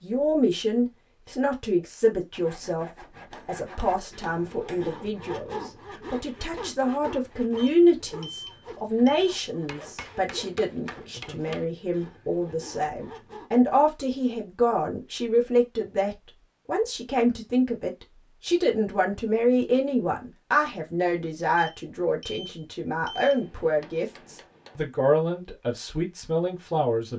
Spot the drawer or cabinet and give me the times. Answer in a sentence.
The drawer or cabinet can't be heard in this clip.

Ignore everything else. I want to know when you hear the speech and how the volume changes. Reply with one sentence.
You can hear the speech from 0.0 to 27.1 s, at a steady volume.